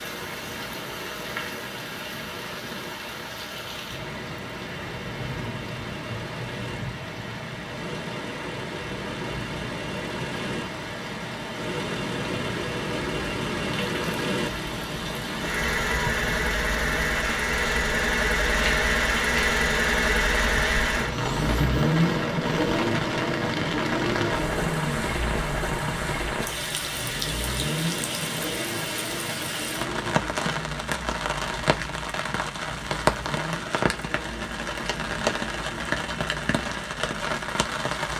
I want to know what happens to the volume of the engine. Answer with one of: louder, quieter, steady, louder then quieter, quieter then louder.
louder then quieter.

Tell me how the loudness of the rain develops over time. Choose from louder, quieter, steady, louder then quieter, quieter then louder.
louder.